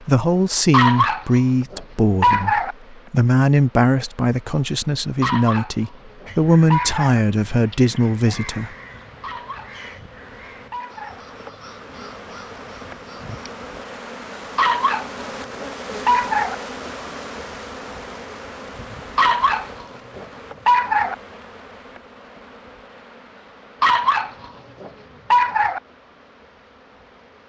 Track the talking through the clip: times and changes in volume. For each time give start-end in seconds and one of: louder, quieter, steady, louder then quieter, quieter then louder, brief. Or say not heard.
0.1-8.7 steady.